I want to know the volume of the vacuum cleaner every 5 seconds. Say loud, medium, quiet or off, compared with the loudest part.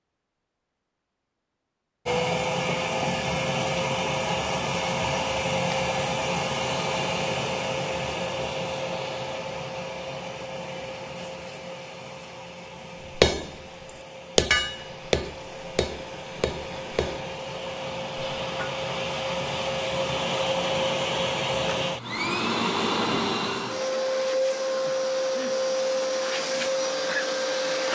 loud, loud, quiet, medium, loud, loud.